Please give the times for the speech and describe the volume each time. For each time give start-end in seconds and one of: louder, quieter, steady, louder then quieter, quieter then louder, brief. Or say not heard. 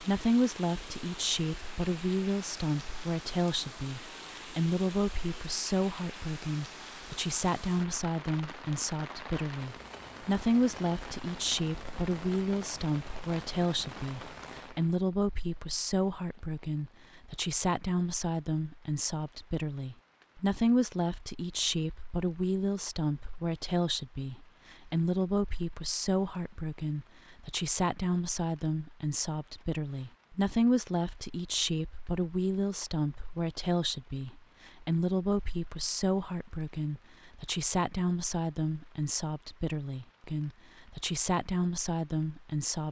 0.0-42.8 steady.